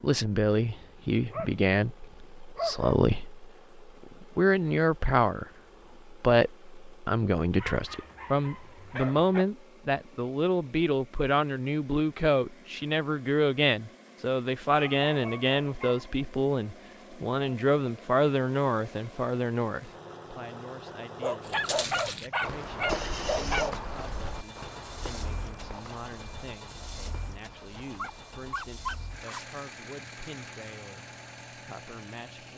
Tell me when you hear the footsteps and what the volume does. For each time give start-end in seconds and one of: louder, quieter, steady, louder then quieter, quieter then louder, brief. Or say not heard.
21.4-29.6 quieter.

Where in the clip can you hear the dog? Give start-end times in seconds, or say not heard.
0.8-3.0, 7.5-9.4, 14.7-16.1, 21.2-23.8, 27.9-29.4.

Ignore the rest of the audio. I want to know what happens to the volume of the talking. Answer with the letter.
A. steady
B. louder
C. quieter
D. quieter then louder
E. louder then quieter
C.